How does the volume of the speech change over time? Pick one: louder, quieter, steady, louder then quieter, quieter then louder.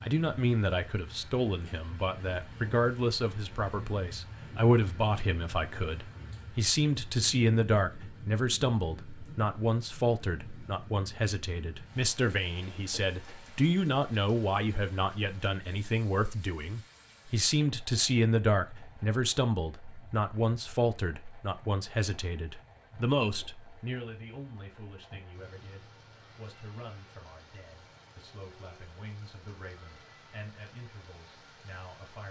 quieter.